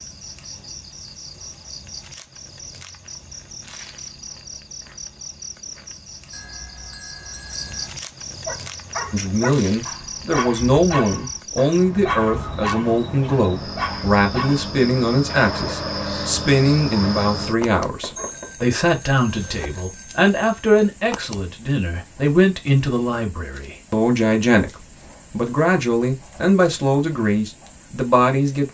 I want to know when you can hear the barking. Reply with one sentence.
You can hear the barking from 8.4 to 18.8 s.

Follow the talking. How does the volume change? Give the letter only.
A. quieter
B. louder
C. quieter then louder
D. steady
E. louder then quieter
D.